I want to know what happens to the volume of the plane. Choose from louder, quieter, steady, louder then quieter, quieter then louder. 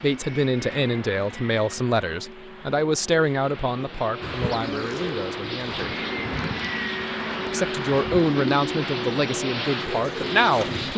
louder.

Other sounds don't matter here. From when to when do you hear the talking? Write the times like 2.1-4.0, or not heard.
0.0-6.0, 7.5-10.9.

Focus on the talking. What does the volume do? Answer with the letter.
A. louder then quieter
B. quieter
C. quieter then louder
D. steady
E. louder
C.